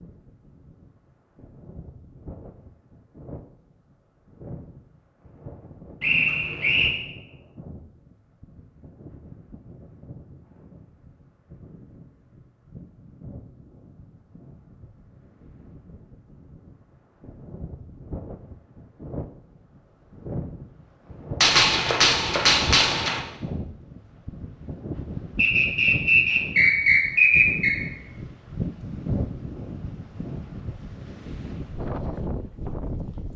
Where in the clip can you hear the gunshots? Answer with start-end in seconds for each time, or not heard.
21.4-23.2.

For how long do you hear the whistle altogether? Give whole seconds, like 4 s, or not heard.
3 s.